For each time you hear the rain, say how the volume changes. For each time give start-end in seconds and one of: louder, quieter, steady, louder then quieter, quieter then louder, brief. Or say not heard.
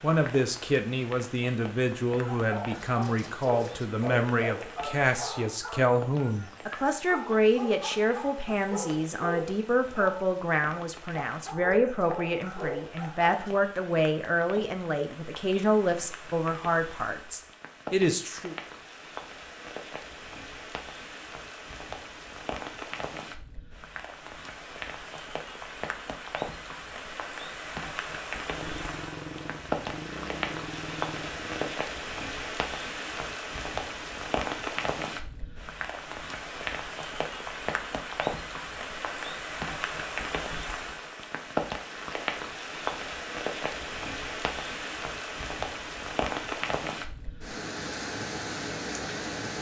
0.0-49.5 louder.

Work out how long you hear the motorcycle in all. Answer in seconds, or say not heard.
3 s.